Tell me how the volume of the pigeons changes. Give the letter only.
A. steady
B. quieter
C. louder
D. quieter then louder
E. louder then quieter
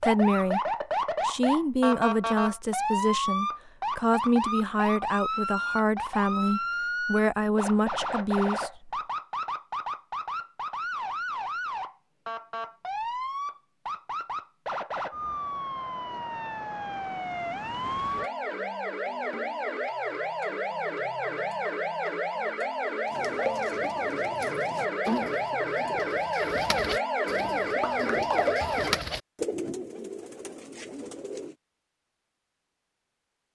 E.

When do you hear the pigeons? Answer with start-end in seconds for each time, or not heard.
23.1-31.6.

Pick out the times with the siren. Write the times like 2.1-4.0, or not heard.
0.0-29.0.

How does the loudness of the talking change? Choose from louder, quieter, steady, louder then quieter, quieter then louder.
steady.